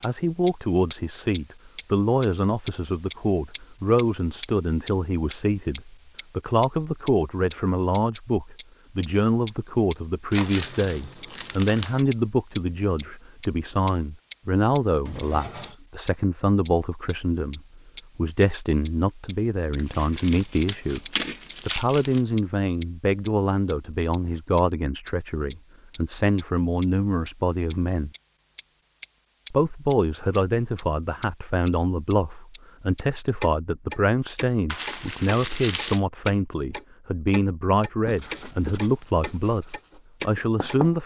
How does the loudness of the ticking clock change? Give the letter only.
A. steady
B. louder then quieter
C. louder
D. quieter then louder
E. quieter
E.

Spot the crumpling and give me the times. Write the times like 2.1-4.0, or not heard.
10.3-12.1, 19.8-22.2, 34.6-36.0.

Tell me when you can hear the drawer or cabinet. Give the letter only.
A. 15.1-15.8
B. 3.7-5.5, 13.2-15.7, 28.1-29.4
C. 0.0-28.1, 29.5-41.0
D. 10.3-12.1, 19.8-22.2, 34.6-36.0
A.